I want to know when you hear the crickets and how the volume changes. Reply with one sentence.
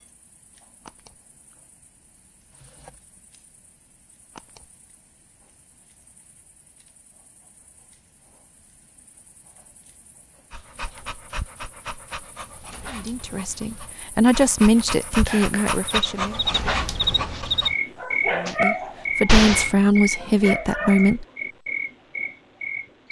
The crickets can be heard from 0.0 to 23.0 s, getting quieter then louder.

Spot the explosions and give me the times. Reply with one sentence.
You can hear the explosions from 19.2 to 19.7 s.